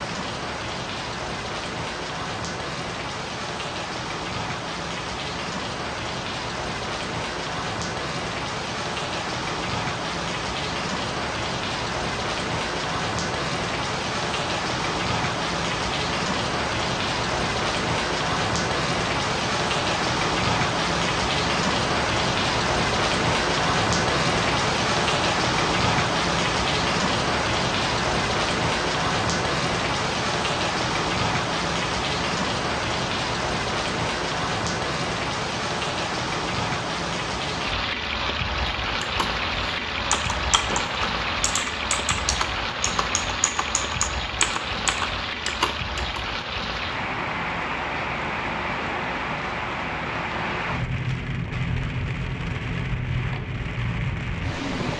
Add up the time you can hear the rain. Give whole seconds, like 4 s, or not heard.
55 s.